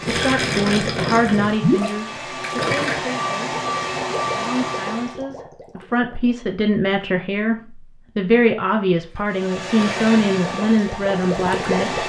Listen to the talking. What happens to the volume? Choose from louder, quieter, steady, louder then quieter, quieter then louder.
quieter then louder.